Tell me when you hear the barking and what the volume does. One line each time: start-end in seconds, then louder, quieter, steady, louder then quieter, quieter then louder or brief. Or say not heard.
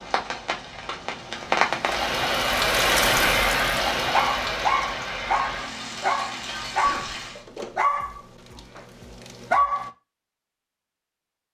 4.1-9.9 quieter.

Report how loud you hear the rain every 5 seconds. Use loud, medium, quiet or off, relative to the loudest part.
loud, medium, off.